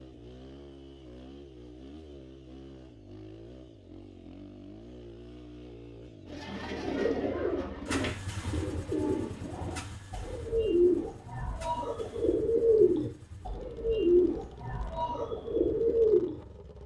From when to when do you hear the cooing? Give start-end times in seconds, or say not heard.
6.3-16.4.